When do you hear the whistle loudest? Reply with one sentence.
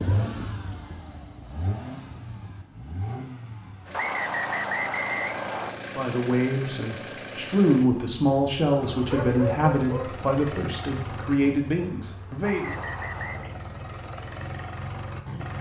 The volume of the whistle peaks at 5 seconds.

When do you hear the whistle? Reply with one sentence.
The whistle can be heard from 3.9 to 5.8 s and from 12.4 to 13.5 s.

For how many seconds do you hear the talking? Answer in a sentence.
The talking can be heard for 7 seconds in total.